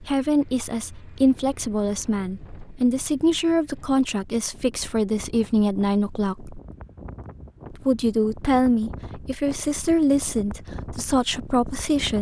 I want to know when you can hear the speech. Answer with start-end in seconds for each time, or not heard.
0.0-6.6, 7.7-12.1.